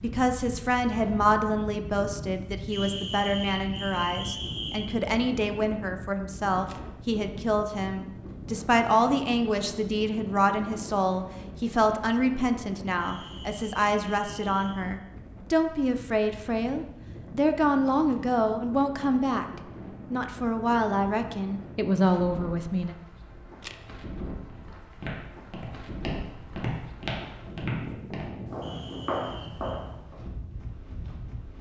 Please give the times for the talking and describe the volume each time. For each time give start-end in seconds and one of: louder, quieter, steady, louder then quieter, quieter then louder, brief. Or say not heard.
0.0-22.9 steady.